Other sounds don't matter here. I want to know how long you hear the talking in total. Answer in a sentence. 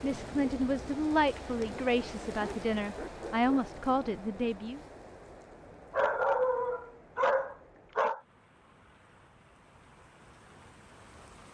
The talking can be heard for 5 seconds in total.